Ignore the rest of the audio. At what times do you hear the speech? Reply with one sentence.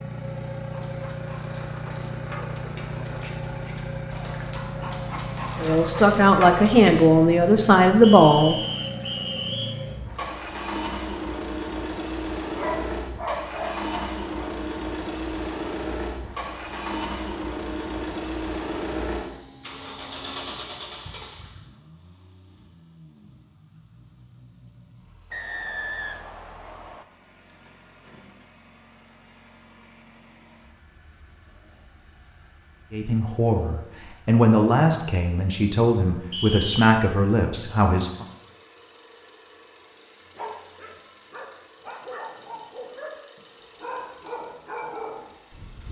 You can hear the speech from 5.6 to 8.6 s and from 32.9 to 38.2 s.